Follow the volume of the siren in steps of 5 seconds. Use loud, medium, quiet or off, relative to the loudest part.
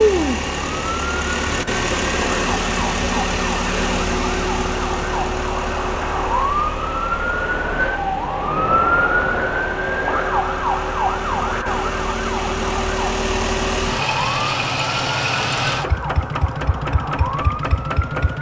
medium, loud, loud, medium.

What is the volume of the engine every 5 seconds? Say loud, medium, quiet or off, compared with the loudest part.
loud, medium, loud, loud.